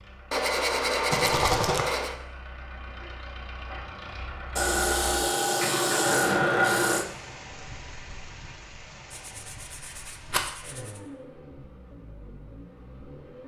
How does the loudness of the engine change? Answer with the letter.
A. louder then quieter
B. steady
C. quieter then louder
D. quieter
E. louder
A.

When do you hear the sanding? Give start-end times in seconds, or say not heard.
0.3-2.1, 4.5-7.0, 9.1-11.0.